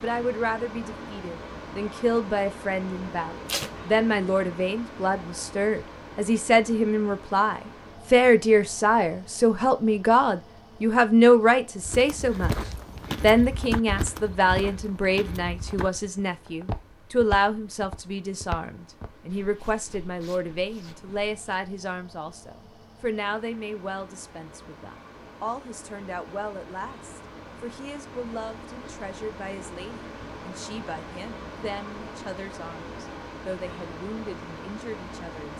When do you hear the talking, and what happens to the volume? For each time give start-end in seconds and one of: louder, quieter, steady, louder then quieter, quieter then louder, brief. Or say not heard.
0.0-12.5 louder
13.2-35.5 quieter.